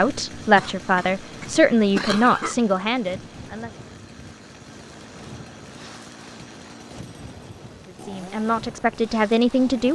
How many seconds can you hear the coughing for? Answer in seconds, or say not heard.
2 s.